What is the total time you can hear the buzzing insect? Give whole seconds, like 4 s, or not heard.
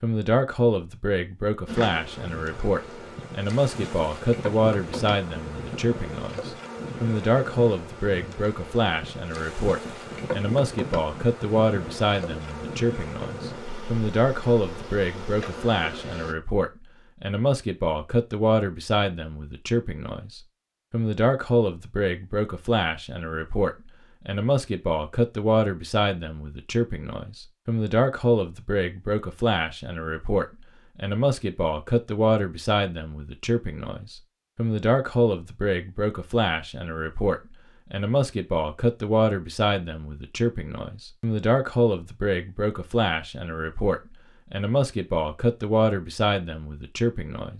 15 s.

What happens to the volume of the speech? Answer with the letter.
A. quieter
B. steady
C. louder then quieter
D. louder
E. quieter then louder
B.